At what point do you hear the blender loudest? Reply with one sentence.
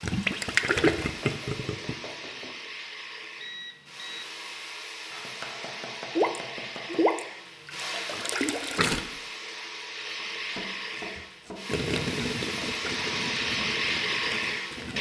The volume of the blender peaks at 14 seconds.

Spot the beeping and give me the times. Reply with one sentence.
You can hear the beeping from 3.4 to 4.2 s.